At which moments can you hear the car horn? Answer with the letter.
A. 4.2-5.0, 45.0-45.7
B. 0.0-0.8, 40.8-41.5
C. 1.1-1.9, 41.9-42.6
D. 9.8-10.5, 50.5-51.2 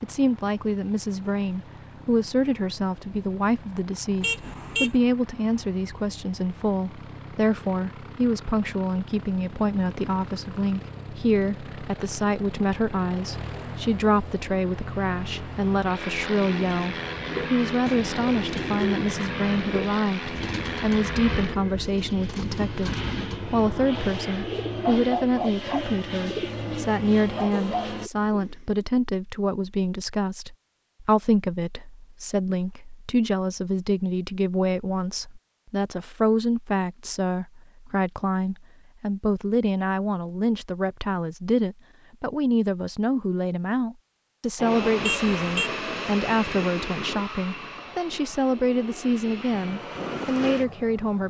A.